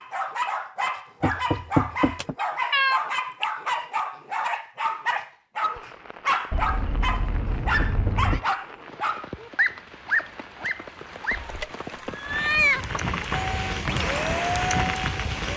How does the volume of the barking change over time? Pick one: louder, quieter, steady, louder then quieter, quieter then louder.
steady.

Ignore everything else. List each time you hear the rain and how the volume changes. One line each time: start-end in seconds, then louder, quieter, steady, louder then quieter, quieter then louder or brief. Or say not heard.
5.6-15.5 louder.